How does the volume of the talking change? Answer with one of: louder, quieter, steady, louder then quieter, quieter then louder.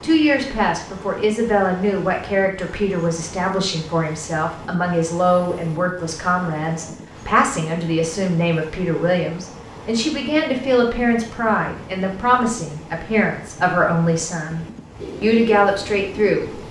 steady.